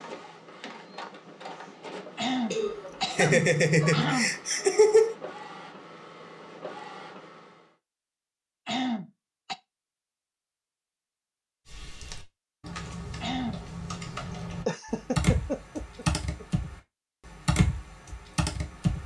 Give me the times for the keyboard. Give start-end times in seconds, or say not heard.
11.7-19.0.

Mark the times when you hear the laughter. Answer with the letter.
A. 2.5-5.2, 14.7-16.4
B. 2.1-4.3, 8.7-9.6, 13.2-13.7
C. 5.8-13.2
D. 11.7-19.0
A.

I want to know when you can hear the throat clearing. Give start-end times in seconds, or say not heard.
2.1-4.3, 8.7-9.6, 13.2-13.7.